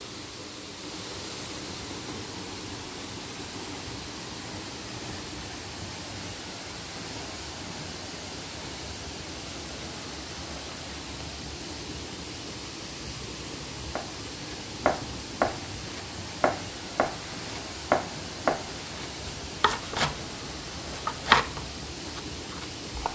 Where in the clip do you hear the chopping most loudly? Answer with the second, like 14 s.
21 s.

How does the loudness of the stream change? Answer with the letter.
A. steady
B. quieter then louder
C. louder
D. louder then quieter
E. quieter
A.